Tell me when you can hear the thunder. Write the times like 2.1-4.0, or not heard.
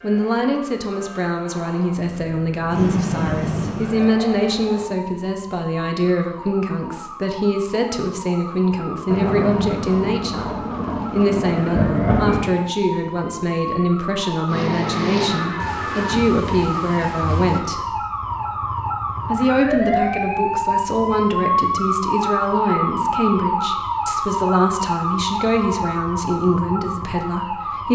9.1-12.4, 15.6-17.6.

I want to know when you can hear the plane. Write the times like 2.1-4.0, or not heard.
2.7-5.0, 14.4-16.2.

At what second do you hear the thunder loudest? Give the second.
12 s.